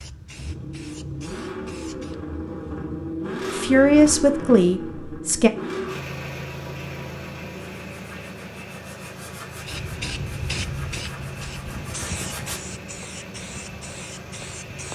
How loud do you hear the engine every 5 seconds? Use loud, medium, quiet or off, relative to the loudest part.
loud, loud, medium.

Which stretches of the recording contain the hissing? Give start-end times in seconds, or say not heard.
0.0-2.2, 9.6-14.9.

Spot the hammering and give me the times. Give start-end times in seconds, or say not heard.
not heard.